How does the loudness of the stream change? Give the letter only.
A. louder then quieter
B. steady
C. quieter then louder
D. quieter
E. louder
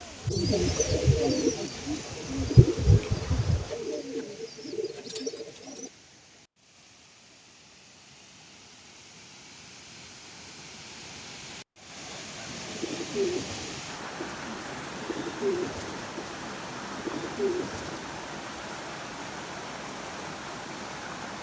C.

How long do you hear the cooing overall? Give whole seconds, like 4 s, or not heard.
11 s.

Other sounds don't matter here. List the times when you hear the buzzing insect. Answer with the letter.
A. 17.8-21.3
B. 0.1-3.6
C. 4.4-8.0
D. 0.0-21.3
B.